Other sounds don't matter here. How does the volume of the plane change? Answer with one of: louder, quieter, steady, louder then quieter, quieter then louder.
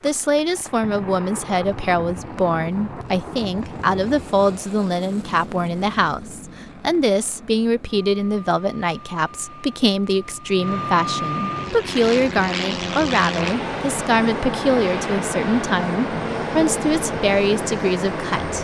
louder.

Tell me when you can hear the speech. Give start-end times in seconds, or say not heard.
0.0-18.5.